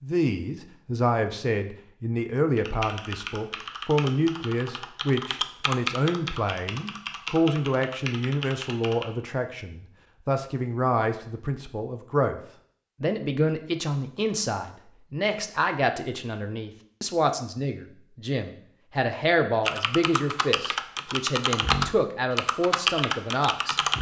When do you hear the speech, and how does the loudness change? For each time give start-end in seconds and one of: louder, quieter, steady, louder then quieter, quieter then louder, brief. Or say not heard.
0.0-12.4 steady
13.0-23.8 steady.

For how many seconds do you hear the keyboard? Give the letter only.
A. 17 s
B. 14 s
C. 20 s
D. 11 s
D.